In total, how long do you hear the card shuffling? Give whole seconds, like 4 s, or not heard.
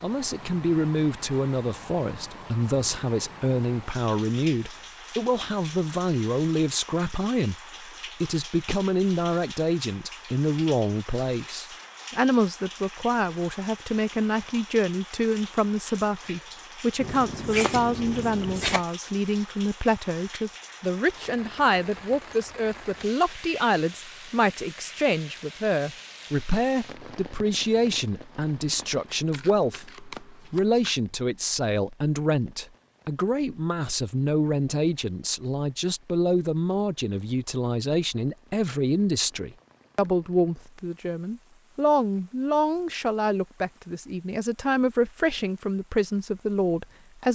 4 s.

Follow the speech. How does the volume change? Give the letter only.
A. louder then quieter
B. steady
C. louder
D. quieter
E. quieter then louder
B.